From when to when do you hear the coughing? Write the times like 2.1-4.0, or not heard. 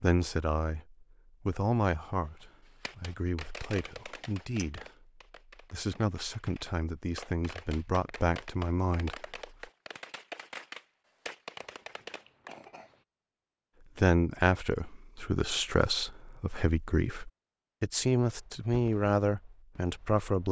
11.6-13.1.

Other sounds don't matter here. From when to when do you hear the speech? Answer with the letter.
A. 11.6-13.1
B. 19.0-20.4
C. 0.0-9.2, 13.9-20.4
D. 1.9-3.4
C.